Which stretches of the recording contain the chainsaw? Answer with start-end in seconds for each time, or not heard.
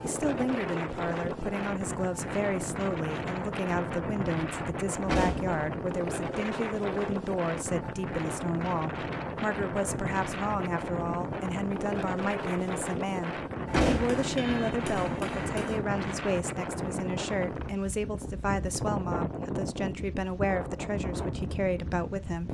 not heard.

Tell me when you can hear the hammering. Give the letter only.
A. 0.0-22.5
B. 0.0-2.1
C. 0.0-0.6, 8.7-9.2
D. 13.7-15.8
D.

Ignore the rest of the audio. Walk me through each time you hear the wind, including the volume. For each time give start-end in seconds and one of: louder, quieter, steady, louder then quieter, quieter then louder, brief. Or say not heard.
0.0-22.5 steady.